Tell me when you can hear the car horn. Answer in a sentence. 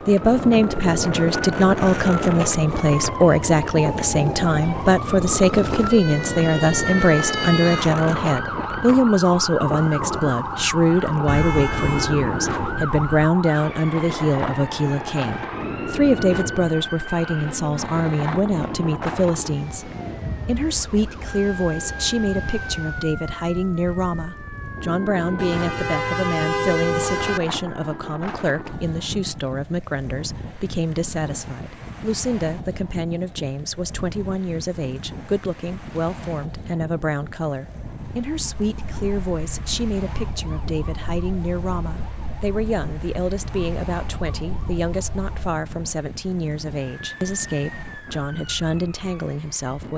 The car horn can be heard from 11.2 to 13.2 s and from 25.4 to 27.4 s.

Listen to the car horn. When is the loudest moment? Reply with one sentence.
The volume of the car horn peaks at 27 seconds.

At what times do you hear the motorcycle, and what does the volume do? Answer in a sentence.
The motorcycle can't be heard in this clip.